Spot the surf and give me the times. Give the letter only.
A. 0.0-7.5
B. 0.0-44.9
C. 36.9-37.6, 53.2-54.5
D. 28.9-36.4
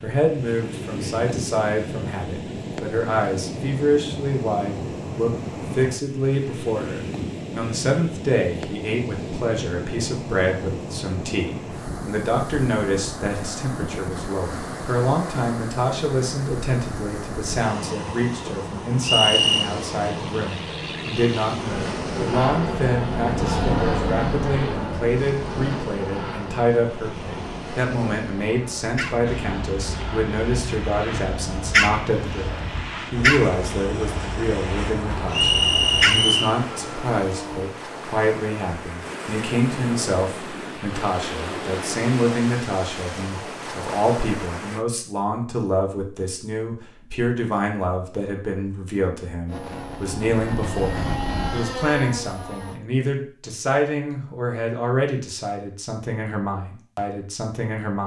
B.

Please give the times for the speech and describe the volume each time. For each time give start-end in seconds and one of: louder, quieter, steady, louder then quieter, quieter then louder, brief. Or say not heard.
0.0-58.0 steady.